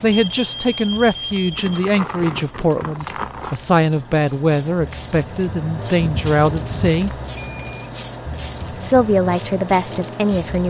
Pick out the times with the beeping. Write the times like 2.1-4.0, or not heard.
0.0-1.9, 7.3-7.9.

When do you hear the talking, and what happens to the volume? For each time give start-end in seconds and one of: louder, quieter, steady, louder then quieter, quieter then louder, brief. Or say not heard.
0.0-7.1 steady
8.8-10.6 brief.